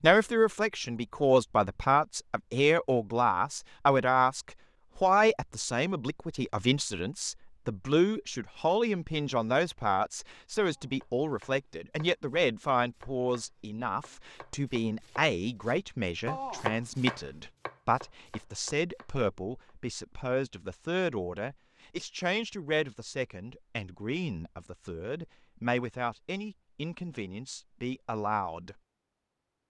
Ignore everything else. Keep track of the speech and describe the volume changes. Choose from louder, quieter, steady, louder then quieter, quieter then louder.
quieter.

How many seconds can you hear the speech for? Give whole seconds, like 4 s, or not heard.
29 s.